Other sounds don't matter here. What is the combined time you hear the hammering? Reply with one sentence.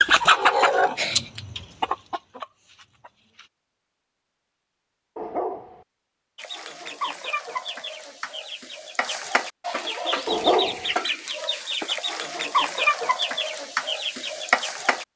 You can't hear the hammering here.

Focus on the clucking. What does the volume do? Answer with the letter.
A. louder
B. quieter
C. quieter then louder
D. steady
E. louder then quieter
C.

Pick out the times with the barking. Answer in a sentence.
The barking can be heard from 5.2 to 5.8 s and from 10.2 to 10.9 s.